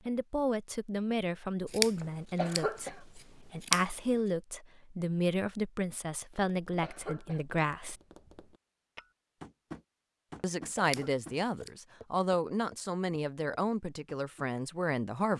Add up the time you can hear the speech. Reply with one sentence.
You can hear the speech for 13 seconds altogether.